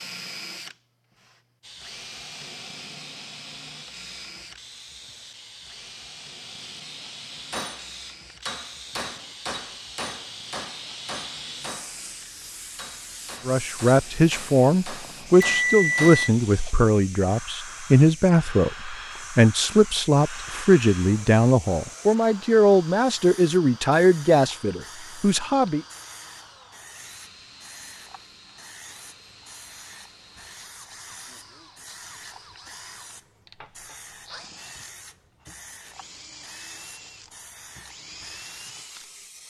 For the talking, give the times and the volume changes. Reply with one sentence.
You can hear the talking from 13.4 to 25.8 s, at a steady volume.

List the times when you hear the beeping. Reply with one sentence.
You can hear the beeping from 15.0 to 16.3 s.